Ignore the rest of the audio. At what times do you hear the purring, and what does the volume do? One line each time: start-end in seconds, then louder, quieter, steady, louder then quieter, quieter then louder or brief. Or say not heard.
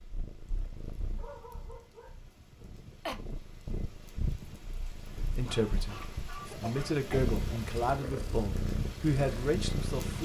0.0-10.2 louder.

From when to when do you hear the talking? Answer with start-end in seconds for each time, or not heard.
5.2-10.2.